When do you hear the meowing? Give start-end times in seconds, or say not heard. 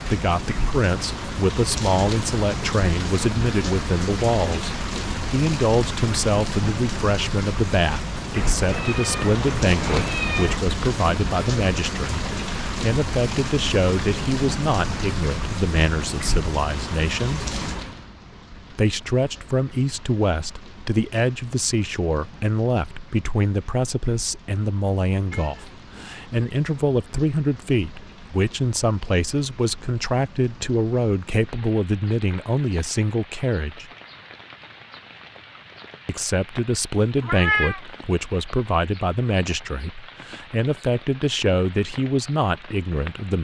8.3-10.7, 25.3-26.2, 37.2-37.8.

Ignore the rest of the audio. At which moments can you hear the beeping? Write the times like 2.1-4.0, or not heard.
not heard.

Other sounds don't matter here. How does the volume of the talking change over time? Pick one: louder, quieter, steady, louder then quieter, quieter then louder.
steady.